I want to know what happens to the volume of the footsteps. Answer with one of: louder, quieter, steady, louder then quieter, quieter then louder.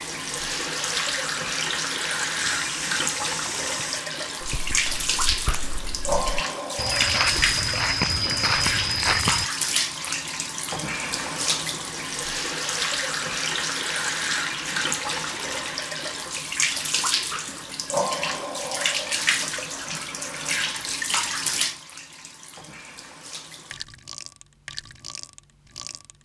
quieter then louder.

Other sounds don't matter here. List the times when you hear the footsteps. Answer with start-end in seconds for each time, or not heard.
2.4-9.5.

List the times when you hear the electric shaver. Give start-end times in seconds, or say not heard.
not heard.